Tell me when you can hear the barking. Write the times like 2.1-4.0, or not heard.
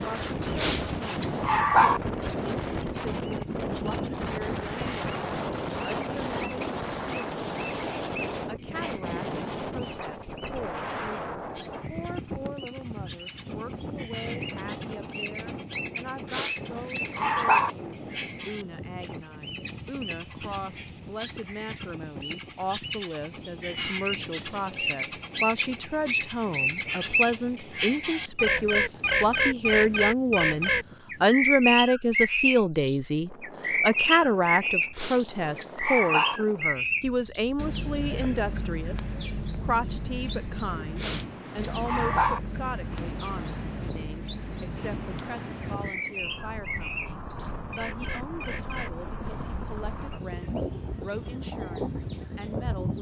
0.6-2.0, 16.3-17.7, 35.0-36.4, 41.0-42.4.